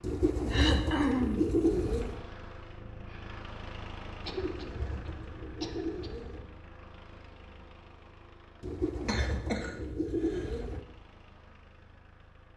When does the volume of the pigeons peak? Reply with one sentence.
The volume of the pigeons peaks at 2 seconds.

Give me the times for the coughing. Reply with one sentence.
You can hear the coughing from 0.5 to 1.4 s, from 4.2 to 6.1 s and from 9.1 to 10.6 s.